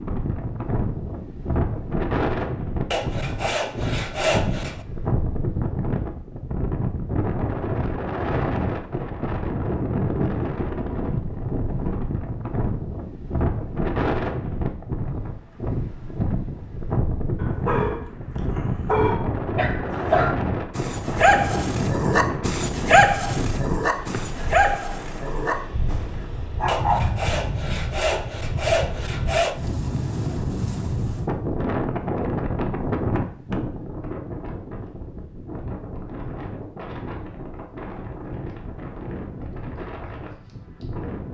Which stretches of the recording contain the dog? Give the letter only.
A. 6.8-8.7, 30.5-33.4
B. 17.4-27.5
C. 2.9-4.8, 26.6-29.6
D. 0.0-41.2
B.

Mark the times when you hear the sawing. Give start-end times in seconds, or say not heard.
2.9-4.8, 26.6-29.6.